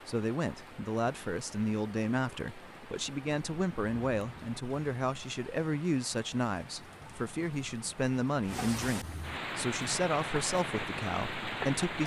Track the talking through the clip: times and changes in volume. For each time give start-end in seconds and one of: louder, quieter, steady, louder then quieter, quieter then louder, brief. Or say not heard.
0.1-12.0 steady.